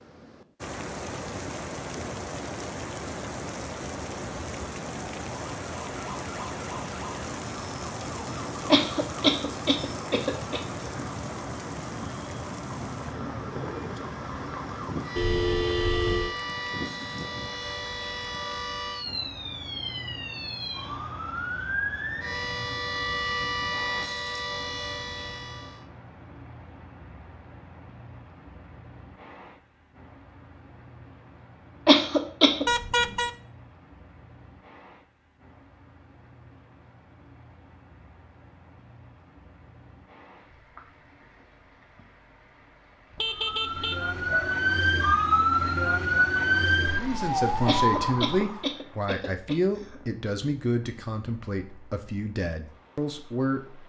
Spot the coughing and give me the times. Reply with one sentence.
The coughing can be heard from 8.7 to 11.0 s, from 31.9 to 32.6 s and from 47.6 to 50.0 s.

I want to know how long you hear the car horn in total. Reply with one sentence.
The car horn can be heard for 3 seconds in total.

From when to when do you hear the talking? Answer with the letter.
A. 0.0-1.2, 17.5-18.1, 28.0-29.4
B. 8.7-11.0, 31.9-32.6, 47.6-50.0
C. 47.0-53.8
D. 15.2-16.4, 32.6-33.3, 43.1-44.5
C.